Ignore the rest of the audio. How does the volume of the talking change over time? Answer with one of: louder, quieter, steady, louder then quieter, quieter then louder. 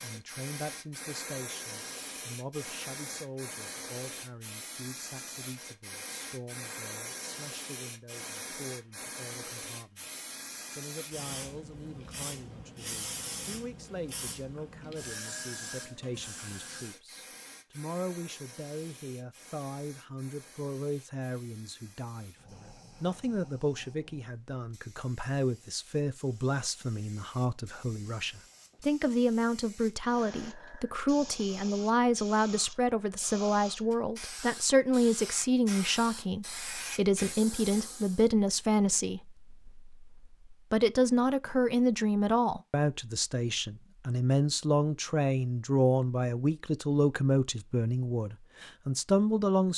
louder.